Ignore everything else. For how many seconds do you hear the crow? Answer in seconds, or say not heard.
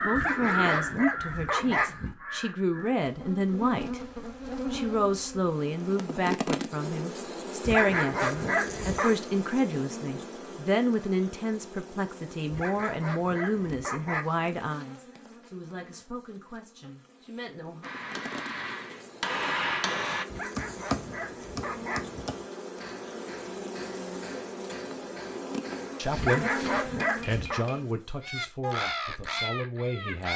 5 s.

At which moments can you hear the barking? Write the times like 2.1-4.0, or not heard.
0.1-2.1, 7.7-9.2, 12.5-14.2, 20.2-22.3, 26.1-27.6.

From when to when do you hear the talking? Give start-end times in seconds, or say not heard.
0.0-4.0, 4.7-17.9, 25.9-26.4, 27.2-30.3.